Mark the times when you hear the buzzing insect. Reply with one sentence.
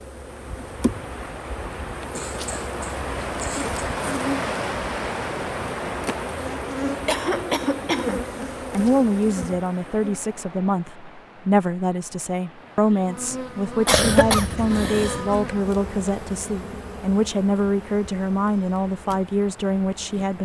You can hear the buzzing insect from 0.0 to 10.4 s and from 12.8 to 20.4 s.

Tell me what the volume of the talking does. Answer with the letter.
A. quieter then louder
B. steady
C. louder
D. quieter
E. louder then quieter
B.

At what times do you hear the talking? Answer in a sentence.
You can hear the talking from 8.7 to 20.4 s.